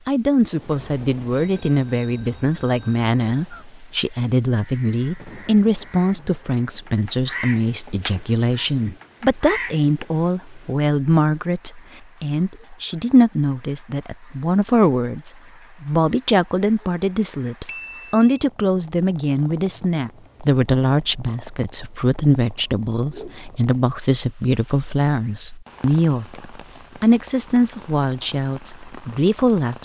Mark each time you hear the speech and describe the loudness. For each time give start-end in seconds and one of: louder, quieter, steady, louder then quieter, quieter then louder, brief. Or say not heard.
0.1-29.8 steady.